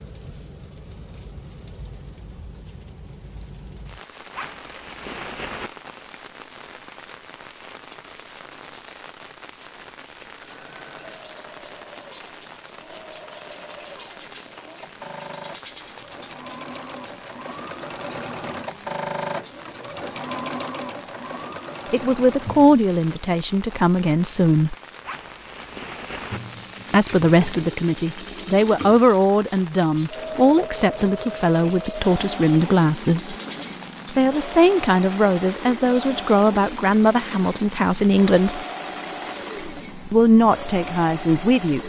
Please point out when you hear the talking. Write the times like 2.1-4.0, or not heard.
21.9-24.8, 26.9-33.4, 34.1-38.6, 40.1-41.8.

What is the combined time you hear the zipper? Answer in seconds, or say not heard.
3 s.